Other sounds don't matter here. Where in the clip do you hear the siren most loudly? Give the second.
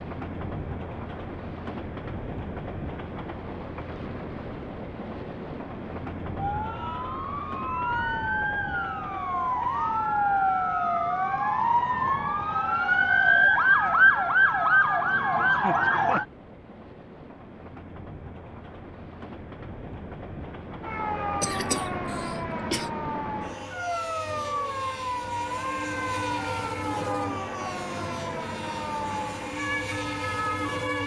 14 s.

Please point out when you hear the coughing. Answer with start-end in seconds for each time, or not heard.
21.4-22.9.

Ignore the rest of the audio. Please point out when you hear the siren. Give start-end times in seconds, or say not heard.
6.3-16.2, 20.8-31.0.